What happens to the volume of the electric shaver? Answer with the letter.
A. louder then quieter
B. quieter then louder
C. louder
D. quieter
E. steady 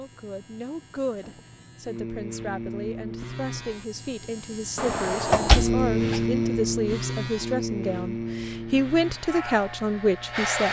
A.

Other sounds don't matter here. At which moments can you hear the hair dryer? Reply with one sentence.
You can hear the hair dryer from 8.4 to 10.6 s.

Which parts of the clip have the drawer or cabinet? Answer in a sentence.
The drawer or cabinet can be heard from 4.8 to 6.2 s.